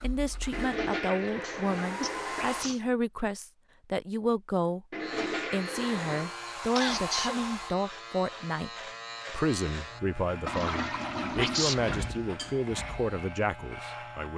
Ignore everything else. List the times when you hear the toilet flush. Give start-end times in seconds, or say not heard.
0.5-2.7, 4.9-6.3, 10.4-12.1.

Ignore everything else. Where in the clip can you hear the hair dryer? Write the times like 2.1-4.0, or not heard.
0.0-2.6, 5.7-7.8.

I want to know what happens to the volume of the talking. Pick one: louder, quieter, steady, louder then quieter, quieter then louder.
steady.